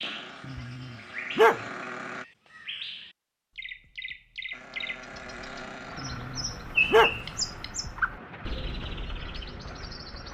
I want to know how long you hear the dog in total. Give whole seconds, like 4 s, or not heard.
2 s.